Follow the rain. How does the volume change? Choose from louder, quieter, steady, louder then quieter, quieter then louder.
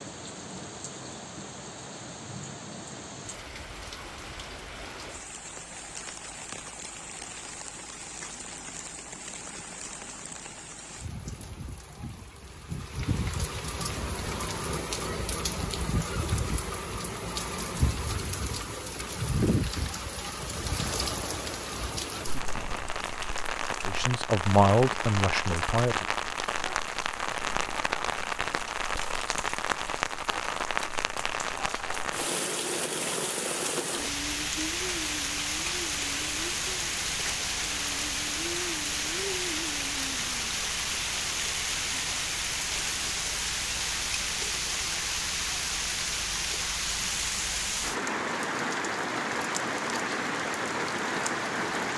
louder.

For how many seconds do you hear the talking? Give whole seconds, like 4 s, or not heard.
2 s.